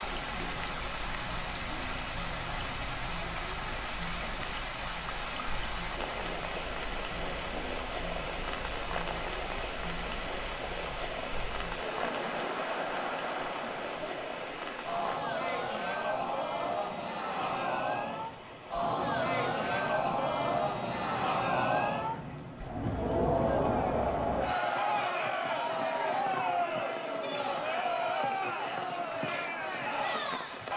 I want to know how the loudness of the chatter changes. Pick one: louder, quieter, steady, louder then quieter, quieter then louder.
louder.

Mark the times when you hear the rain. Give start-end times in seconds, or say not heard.
0.0-30.7.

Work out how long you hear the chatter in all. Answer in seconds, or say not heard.
31 s.